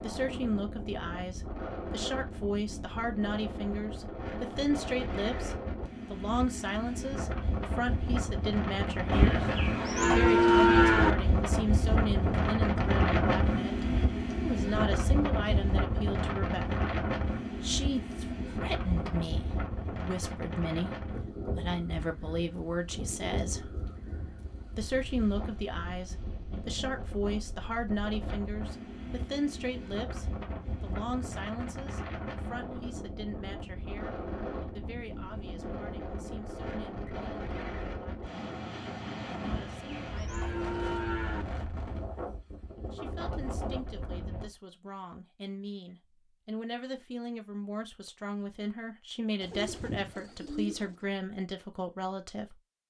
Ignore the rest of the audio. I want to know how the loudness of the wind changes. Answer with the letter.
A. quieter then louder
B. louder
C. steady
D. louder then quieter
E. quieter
D.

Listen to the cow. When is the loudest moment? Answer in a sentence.
The volume of the cow peaks at 11 seconds.